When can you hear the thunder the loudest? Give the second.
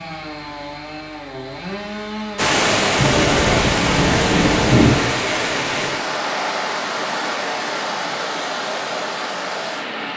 5 s.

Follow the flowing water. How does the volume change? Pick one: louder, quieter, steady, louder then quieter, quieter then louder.
quieter.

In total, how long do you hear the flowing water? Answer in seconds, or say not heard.
8 s.